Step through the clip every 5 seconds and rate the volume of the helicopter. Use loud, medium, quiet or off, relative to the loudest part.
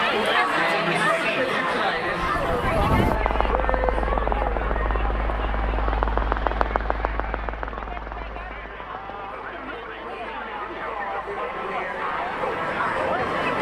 loud, loud, medium.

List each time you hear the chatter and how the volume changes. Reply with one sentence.
You can hear the chatter from 0.0 to 13.5 s, getting quieter then louder.